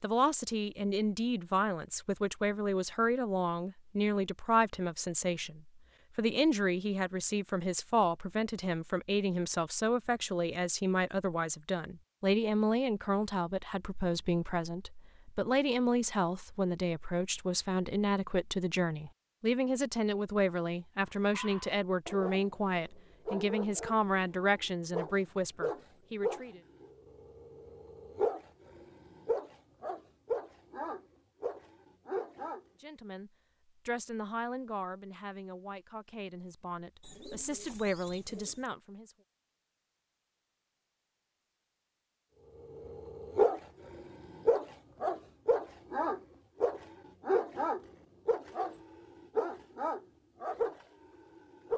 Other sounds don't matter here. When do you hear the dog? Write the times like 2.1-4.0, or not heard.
21.3-32.6, 42.8-51.7.